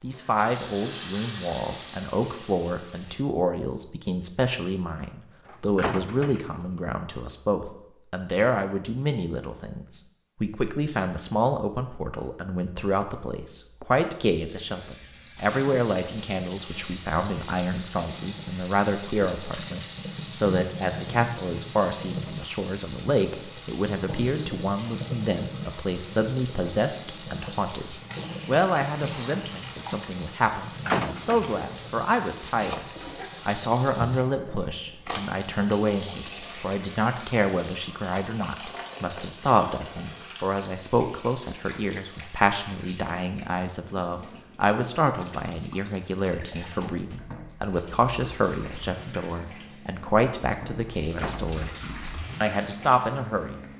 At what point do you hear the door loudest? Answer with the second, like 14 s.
31 s.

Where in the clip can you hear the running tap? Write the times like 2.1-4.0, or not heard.
0.1-3.2, 14.4-53.7.